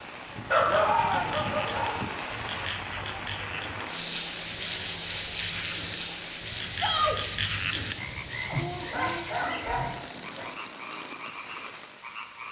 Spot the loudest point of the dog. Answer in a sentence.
The volume of the dog peaks at 1 second.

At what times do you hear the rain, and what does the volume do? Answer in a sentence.
The rain can be heard from 0.0 to 12.4 s, getting quieter.